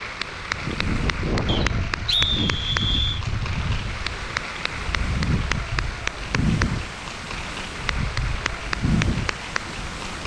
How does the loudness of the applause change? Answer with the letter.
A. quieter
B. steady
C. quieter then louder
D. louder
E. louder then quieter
B.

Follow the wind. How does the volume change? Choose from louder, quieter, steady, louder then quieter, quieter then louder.
steady.